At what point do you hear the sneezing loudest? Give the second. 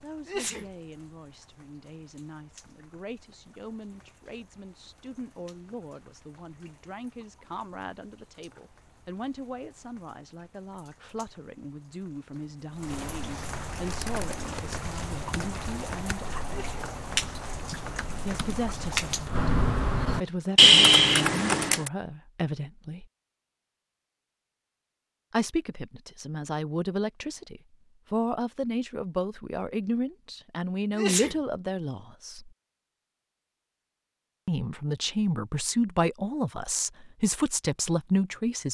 31 s.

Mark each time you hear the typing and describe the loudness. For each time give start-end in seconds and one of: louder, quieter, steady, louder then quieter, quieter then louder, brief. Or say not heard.
13.7-21.9 louder.